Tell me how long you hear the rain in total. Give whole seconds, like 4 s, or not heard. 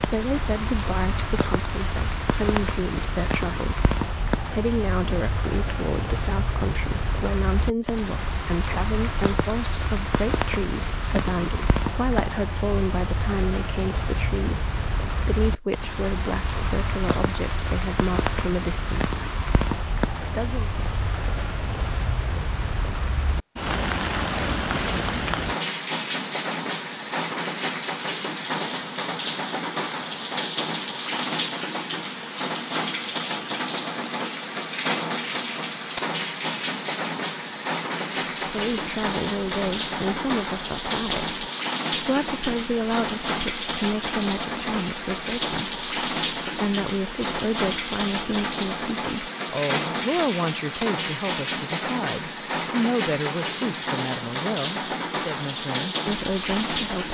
57 s.